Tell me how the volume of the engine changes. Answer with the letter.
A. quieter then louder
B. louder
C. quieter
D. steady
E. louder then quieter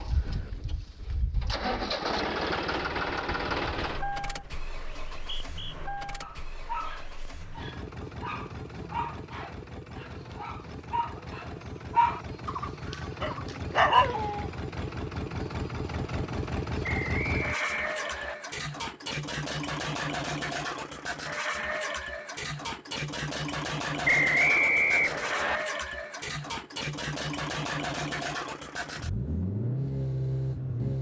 A.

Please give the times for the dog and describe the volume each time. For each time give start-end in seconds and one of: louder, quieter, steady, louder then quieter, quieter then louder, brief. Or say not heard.
6.2-14.5 louder.